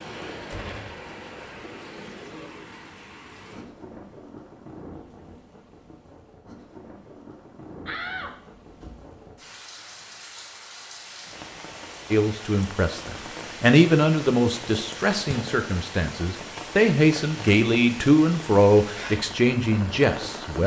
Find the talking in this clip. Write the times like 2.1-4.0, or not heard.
12.1-20.6.